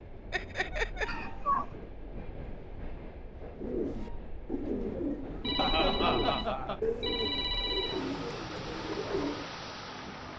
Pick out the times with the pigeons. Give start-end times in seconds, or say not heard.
3.5-9.6.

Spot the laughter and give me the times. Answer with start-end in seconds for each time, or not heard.
0.3-1.1, 5.5-6.8.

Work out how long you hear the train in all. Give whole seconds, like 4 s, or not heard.
10 s.